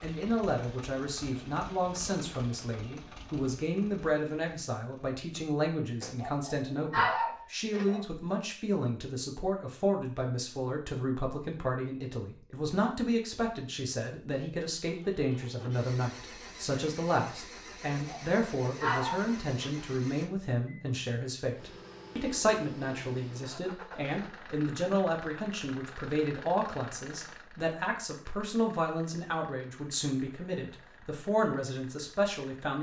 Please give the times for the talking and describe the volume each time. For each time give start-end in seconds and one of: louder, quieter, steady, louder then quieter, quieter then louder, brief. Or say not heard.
0.0-32.7 steady.